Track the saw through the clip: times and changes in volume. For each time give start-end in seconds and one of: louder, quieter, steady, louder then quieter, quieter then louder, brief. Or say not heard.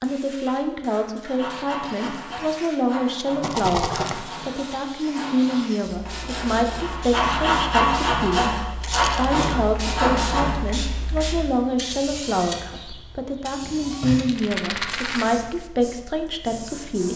1.2-10.6 louder.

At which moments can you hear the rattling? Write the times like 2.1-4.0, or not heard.
3.4-4.2, 8.8-9.4, 14.2-15.3.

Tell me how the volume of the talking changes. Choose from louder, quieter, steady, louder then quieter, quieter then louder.
steady.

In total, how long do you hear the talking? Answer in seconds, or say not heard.
17 s.